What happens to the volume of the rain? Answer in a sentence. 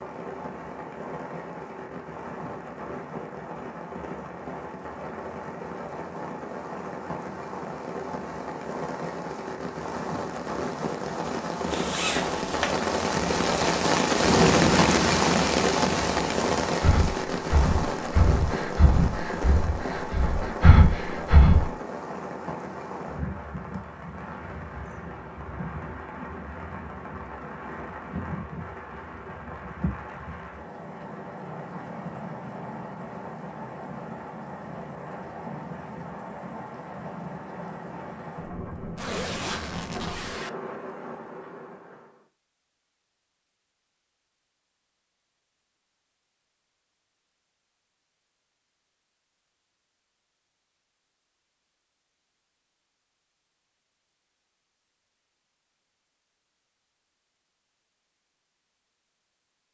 The loudness of the rain goes up, then down.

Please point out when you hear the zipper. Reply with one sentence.
The zipper can be heard from 11.7 to 12.8 s and from 39.0 to 40.5 s.